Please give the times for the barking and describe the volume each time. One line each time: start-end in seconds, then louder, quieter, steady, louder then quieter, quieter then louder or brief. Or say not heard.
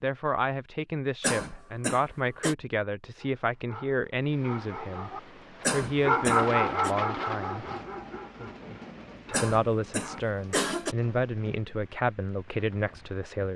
3.1-10.2 louder then quieter.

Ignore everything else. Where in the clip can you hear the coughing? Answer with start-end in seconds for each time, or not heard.
1.2-2.5, 5.6-7.0, 9.3-10.9.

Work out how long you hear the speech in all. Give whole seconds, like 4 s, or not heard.
11 s.